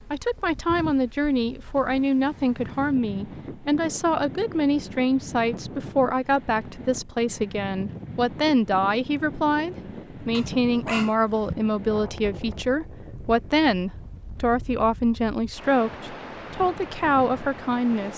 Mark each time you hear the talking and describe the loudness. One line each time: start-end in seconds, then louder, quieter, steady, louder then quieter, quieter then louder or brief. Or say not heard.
0.1-18.1 steady.